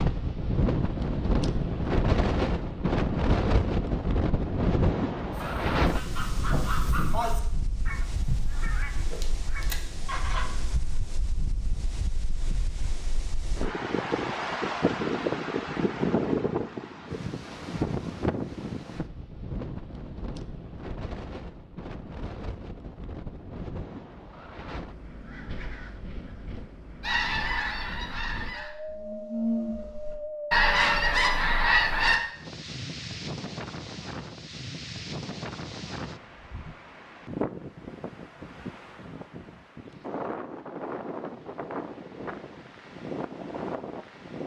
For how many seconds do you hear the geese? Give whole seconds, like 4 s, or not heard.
10 s.